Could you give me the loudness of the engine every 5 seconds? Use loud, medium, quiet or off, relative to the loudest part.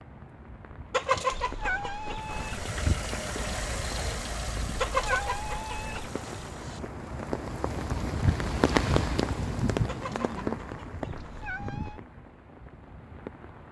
loud, medium, off.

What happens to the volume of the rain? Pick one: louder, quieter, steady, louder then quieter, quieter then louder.
louder then quieter.